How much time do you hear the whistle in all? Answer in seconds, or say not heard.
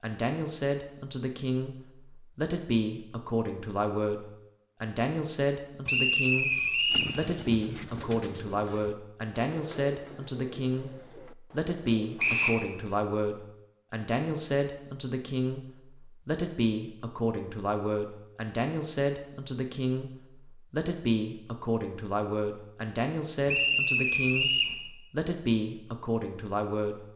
3 s.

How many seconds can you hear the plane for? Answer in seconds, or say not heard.
not heard.